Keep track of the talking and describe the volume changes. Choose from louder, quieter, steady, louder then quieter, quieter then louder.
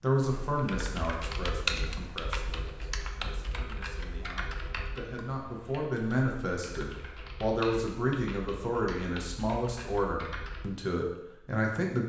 quieter then louder.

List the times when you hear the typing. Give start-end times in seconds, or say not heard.
0.1-10.7.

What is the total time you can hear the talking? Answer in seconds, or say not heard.
12 s.